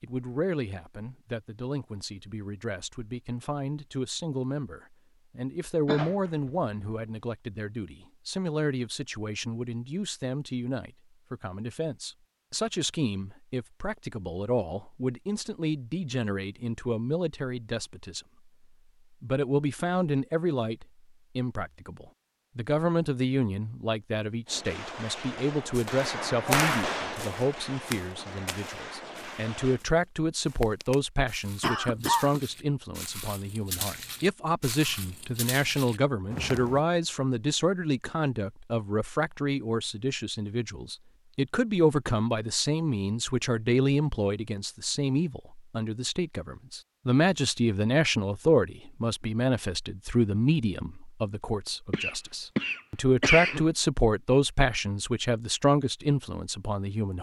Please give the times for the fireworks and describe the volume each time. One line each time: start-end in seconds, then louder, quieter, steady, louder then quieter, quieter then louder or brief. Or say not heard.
24.4-29.8 louder then quieter.